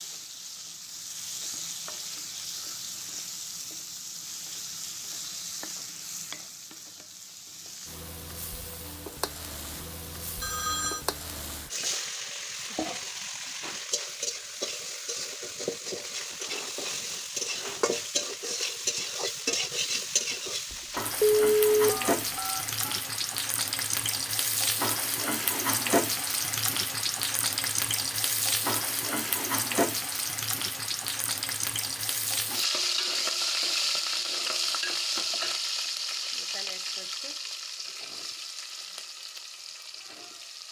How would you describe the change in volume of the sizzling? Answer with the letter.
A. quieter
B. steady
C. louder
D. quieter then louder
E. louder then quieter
C.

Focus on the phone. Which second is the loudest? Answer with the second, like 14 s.
21 s.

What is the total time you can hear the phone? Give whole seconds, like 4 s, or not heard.
3 s.